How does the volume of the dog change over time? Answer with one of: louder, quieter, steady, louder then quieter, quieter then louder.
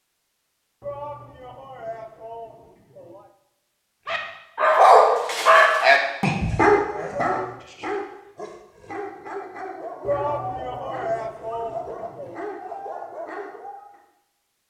quieter.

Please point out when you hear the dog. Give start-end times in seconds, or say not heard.
4.0-14.0.